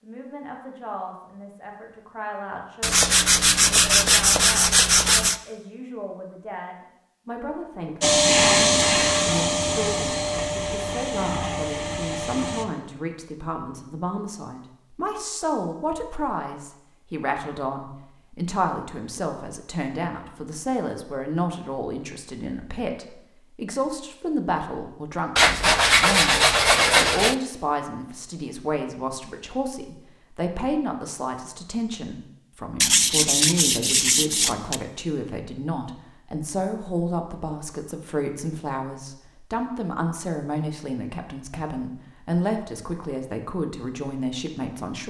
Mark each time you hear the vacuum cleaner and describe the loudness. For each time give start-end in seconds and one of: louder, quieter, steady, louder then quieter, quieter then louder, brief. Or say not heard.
8.0-12.7 quieter.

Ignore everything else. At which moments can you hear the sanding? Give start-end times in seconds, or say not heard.
2.8-5.4, 25.4-27.4, 32.8-34.8.